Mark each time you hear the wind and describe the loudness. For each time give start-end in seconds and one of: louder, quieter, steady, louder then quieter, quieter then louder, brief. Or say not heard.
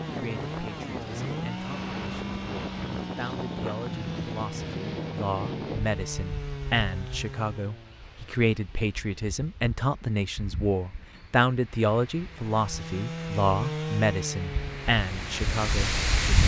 0.0-16.4 quieter then louder.